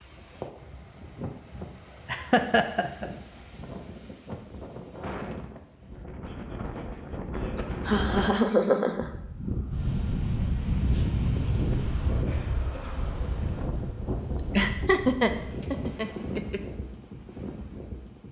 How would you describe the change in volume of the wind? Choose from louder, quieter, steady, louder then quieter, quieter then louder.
louder then quieter.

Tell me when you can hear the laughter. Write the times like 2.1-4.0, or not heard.
2.0-3.0, 7.5-9.1, 14.3-16.6.